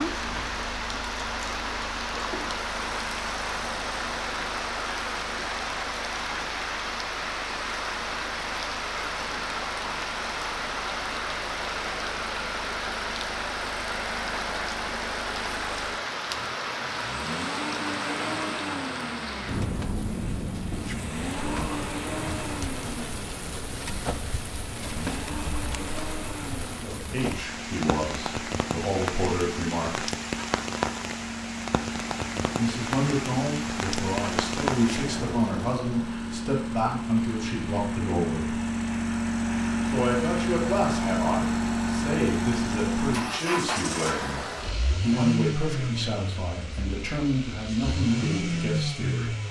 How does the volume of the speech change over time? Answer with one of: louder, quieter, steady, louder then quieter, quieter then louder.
steady.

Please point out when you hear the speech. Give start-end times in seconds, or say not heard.
26.8-30.1, 32.5-38.5, 39.9-49.4.